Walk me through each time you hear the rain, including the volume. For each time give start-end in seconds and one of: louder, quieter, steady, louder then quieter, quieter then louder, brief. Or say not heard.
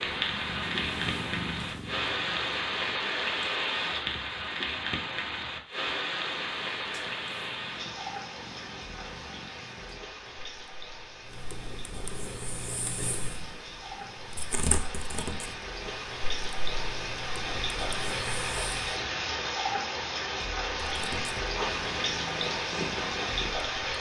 0.0-23.9 quieter then louder.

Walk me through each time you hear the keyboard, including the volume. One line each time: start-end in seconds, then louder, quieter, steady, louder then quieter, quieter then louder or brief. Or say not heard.
not heard.